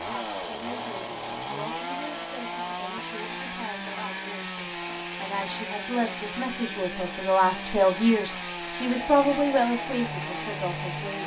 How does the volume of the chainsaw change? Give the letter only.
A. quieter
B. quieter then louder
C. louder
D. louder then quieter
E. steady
E.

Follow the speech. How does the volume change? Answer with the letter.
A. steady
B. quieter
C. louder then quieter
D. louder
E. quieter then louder
D.